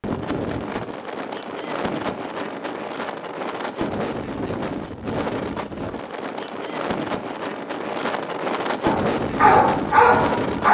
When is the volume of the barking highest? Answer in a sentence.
The loudest moment of the barking is at 10 seconds.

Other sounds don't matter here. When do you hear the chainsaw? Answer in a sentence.
You can't hear the chainsaw here.